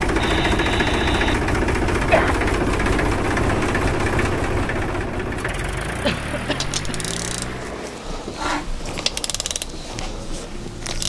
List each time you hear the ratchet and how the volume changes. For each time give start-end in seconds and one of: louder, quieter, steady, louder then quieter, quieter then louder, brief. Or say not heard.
6.5-11.0 louder then quieter.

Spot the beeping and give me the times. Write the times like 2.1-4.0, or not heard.
0.2-1.4.